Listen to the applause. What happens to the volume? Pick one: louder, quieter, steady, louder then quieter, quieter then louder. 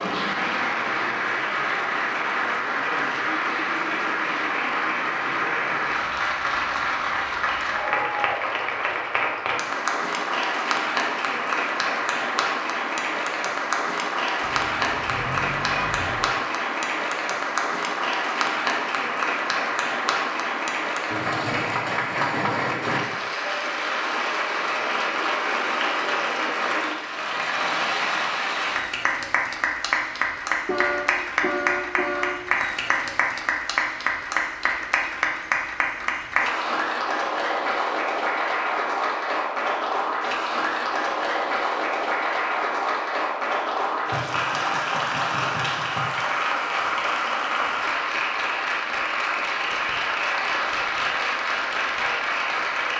steady.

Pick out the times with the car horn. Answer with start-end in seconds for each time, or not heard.
14.4-16.3, 30.6-32.4.